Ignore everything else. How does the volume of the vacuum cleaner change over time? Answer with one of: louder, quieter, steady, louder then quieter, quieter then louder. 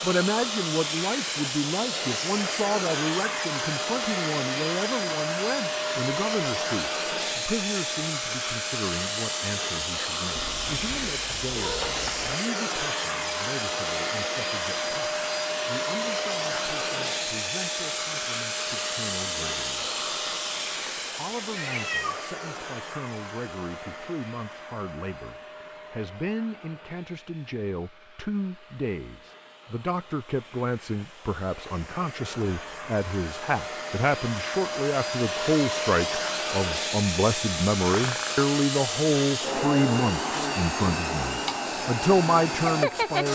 quieter then louder.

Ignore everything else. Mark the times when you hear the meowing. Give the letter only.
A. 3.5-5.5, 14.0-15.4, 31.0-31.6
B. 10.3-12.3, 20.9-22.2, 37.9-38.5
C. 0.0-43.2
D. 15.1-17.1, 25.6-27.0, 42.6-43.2
B.